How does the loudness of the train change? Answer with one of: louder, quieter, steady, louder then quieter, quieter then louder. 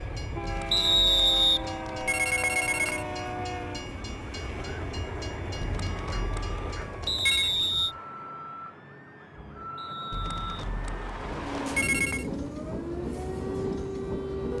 quieter then louder.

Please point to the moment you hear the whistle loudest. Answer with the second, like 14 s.
1 s.